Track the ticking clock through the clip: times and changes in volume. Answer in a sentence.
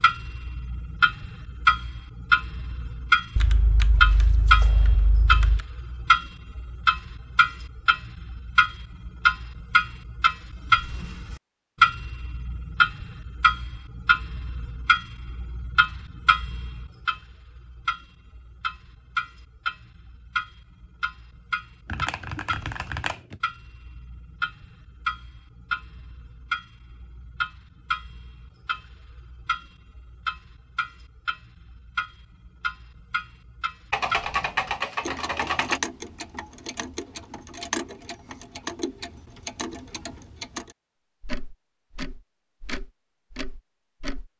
You can hear the ticking clock from 0.0 to 44.3 s, getting quieter.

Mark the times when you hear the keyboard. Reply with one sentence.
You can hear the keyboard from 3.4 to 5.7 s, from 21.9 to 23.4 s and from 33.9 to 35.8 s.